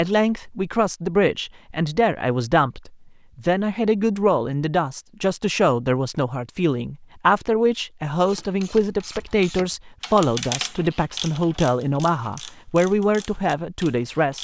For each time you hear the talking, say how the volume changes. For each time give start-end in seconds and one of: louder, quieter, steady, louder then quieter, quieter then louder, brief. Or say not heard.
0.0-14.3 steady.